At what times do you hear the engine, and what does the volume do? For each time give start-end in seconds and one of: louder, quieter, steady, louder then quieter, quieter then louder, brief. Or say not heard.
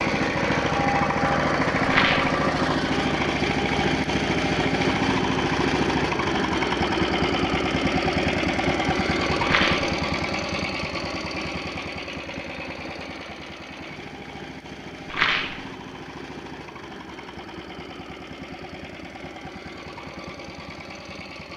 0.0-21.5 quieter.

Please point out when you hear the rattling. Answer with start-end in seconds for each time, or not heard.
1.9-2.4, 9.4-9.9, 15.1-15.6.